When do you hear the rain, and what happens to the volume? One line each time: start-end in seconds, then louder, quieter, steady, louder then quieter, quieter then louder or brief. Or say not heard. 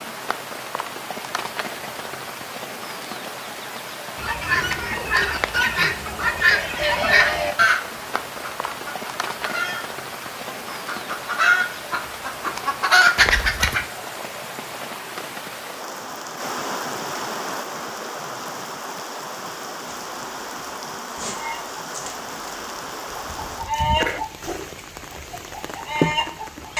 0.0-26.7 steady.